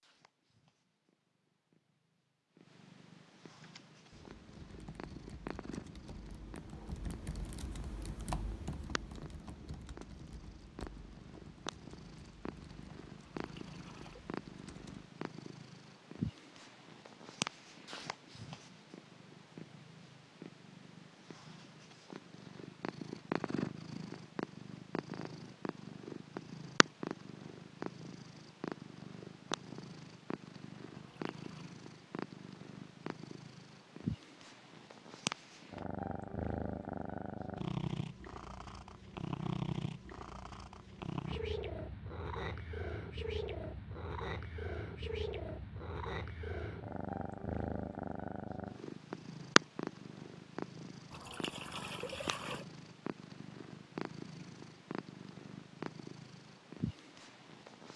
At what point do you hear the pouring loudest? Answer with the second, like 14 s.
52 s.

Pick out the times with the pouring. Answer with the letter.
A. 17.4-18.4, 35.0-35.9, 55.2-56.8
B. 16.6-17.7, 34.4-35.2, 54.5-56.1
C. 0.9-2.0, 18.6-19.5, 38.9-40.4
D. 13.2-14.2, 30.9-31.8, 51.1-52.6
D.